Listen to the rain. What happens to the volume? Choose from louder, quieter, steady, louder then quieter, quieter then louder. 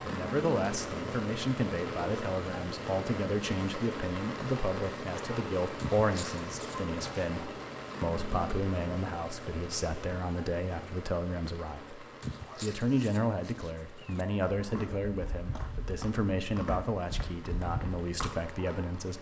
quieter.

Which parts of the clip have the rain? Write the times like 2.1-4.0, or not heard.
0.0-19.1.